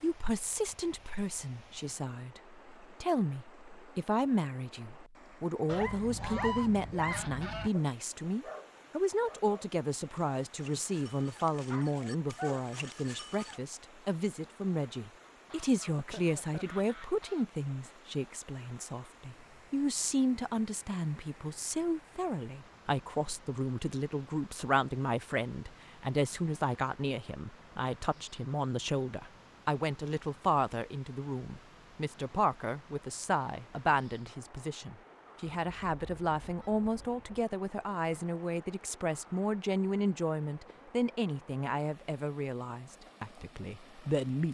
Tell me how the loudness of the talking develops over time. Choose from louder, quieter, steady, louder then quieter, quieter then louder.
steady.